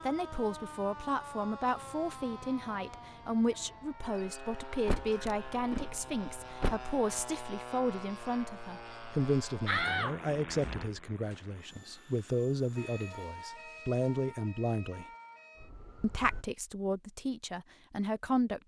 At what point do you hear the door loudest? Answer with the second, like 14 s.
10 s.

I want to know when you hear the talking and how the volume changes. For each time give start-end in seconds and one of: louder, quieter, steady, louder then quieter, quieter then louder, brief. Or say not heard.
0.0-15.1 steady
16.0-18.6 brief.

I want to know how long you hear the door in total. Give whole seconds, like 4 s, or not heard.
3 s.